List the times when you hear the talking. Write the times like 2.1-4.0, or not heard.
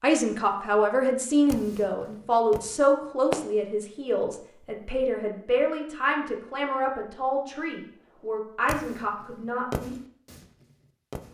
0.0-9.9.